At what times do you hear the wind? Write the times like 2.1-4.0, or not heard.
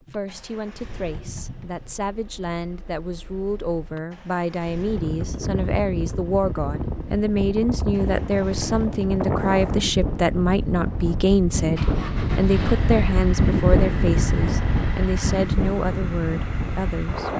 4.7-17.3.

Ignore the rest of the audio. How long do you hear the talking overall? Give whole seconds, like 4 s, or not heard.
17 s.